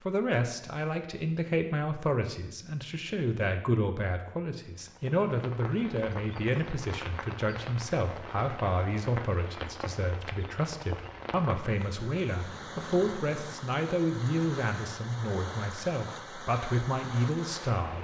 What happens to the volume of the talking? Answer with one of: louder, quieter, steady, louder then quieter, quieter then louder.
steady.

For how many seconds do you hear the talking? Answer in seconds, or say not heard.
18 s.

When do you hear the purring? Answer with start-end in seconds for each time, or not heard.
not heard.